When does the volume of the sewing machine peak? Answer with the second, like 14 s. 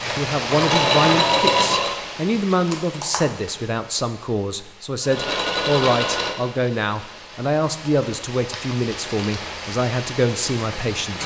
1 s.